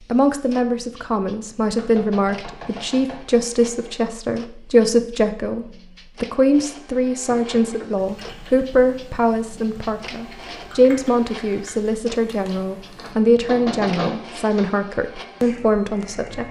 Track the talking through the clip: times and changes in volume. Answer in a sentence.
The talking can be heard from 0.1 to 16.4 s, at a steady volume.